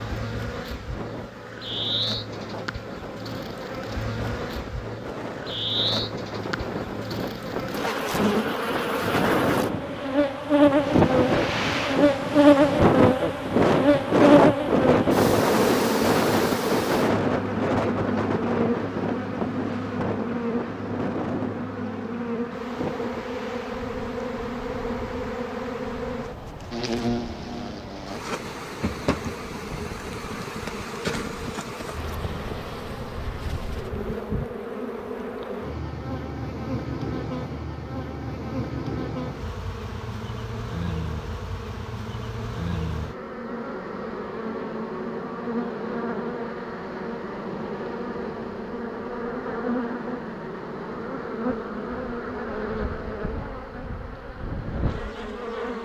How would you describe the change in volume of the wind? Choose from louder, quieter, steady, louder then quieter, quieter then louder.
louder then quieter.